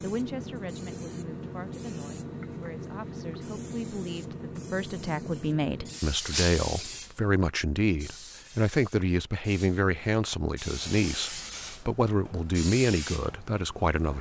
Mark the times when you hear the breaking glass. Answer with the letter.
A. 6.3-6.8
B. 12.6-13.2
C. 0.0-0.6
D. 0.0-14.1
A.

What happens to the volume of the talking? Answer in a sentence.
The loudness of the talking goes up.